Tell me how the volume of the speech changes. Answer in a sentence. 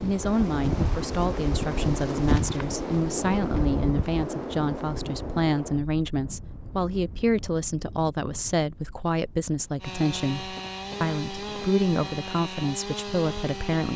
The loudness of the speech stays about the same.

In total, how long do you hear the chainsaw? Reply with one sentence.
You can hear the chainsaw for 4 seconds altogether.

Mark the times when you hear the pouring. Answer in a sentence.
You can't hear the pouring here.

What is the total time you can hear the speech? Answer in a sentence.
The speech can be heard for 14 seconds in total.